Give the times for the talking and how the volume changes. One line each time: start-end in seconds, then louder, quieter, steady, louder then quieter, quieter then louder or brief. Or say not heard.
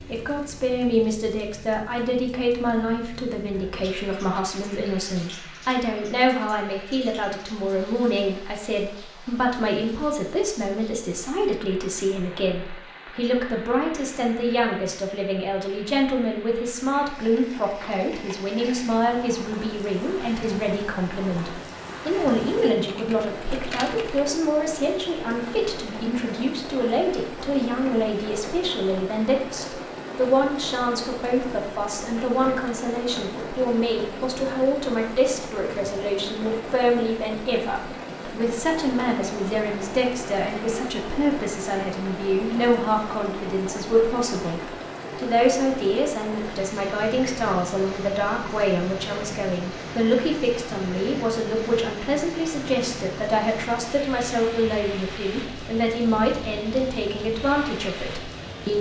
0.1-58.7 steady.